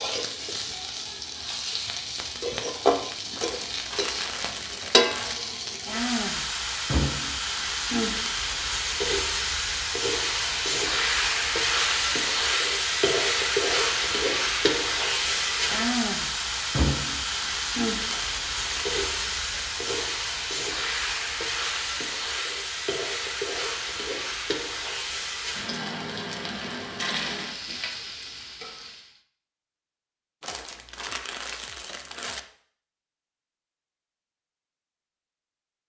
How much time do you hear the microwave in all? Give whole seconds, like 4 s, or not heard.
not heard.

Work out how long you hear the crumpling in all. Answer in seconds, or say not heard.
6 s.